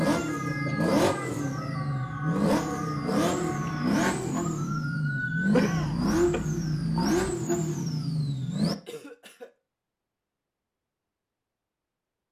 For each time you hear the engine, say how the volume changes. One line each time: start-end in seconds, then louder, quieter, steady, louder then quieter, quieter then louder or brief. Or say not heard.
0.0-8.8 steady.